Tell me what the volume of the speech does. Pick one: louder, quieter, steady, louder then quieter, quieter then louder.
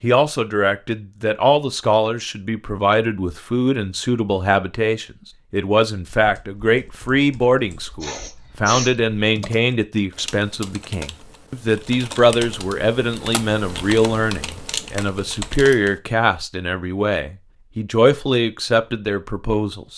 steady.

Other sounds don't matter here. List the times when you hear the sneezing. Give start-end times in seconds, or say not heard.
8.0-8.9.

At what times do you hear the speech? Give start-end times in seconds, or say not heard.
0.0-19.9.